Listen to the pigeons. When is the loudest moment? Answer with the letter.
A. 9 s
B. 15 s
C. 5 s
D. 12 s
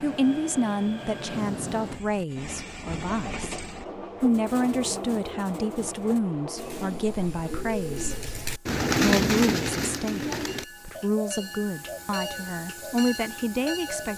A.